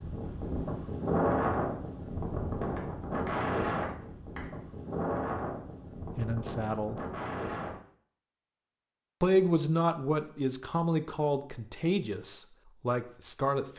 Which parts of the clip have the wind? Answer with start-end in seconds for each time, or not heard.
0.0-7.8.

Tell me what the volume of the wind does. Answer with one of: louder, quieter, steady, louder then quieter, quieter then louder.
quieter.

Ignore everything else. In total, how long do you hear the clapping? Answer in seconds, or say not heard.
2 s.